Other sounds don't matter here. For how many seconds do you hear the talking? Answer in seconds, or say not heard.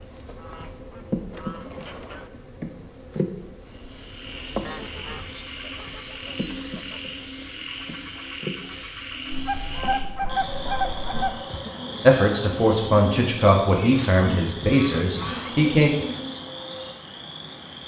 4 s.